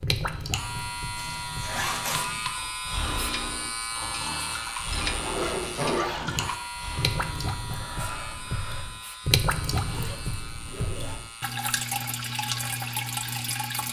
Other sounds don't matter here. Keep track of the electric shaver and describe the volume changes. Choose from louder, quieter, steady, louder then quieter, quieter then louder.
quieter.